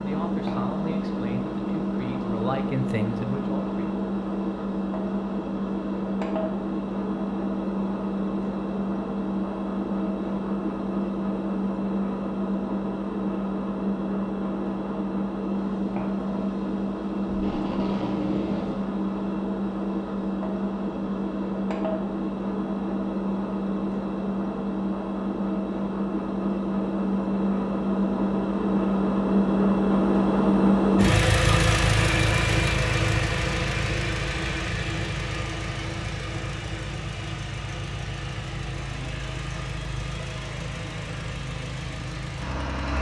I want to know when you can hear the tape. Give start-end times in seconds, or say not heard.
17.2-18.9.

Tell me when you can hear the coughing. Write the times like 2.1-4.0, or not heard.
not heard.